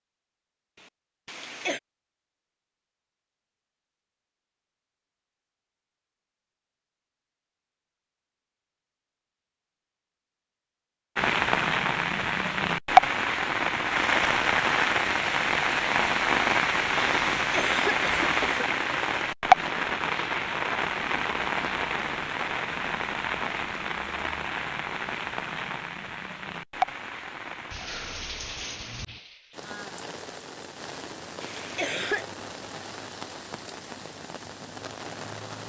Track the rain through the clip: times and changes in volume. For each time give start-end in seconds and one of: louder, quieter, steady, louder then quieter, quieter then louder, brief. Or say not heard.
11.2-35.6 quieter.